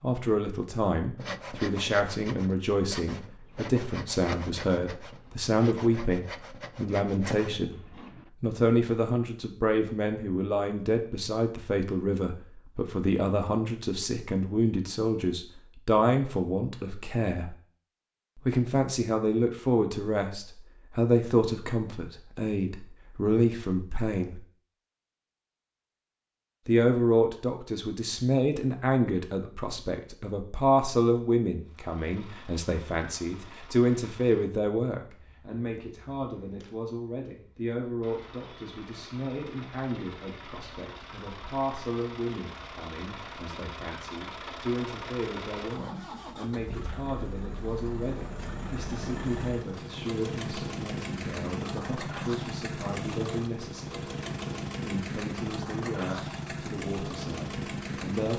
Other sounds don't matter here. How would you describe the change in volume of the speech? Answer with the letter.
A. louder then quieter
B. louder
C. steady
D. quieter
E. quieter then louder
D.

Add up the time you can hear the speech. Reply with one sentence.
You can hear the speech for 54 seconds altogether.